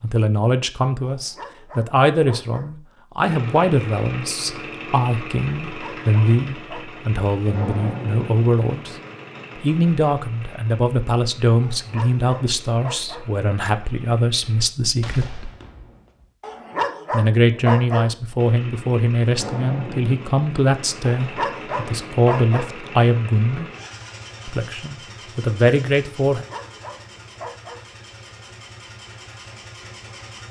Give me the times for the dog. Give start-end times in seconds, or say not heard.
1.0-2.7, 5.7-7.0, 11.6-13.3, 16.4-18.1, 21.1-22.7, 26.3-27.9.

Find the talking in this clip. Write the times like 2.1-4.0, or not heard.
0.0-8.9, 9.6-15.5, 17.1-23.7, 24.4-26.4.